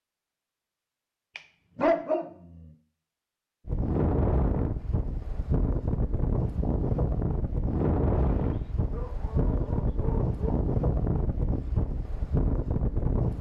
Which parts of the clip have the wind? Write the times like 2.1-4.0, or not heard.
3.6-13.3.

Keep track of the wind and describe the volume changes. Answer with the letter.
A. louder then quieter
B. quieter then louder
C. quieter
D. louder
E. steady
E.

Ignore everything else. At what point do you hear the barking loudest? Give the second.
2 s.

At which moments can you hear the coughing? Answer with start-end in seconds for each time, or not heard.
not heard.